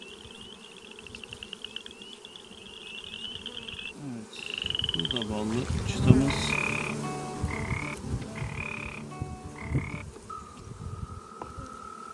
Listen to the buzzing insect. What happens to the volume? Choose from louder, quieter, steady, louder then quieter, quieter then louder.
louder then quieter.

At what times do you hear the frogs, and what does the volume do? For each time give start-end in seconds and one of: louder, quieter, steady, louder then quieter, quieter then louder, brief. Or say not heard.
0.0-12.0 louder then quieter.